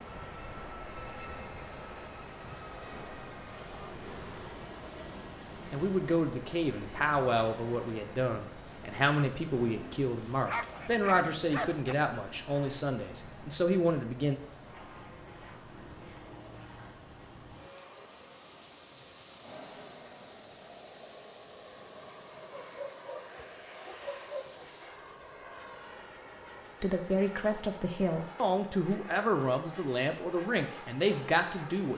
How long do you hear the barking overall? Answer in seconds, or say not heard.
4 s.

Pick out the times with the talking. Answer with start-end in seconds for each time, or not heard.
5.7-14.3, 26.8-31.9.